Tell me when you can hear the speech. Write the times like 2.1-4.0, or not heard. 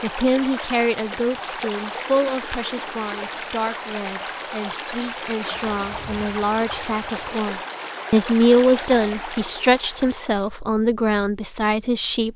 0.0-12.3.